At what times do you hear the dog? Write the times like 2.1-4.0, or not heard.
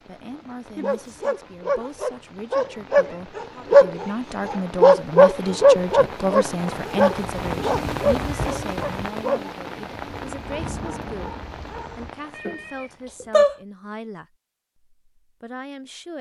0.8-12.1.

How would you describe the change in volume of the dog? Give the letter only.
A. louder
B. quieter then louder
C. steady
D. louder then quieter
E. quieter
D.